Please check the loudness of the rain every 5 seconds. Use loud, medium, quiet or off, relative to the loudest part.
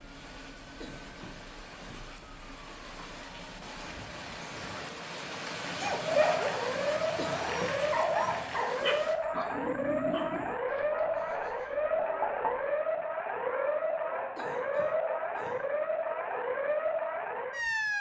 medium, loud, off, off.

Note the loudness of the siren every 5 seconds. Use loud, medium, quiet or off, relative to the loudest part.
quiet, loud, loud, loud.